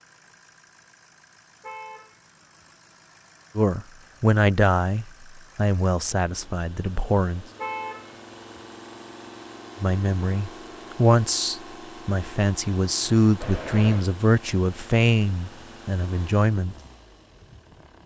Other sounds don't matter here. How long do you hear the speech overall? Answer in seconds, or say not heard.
11 s.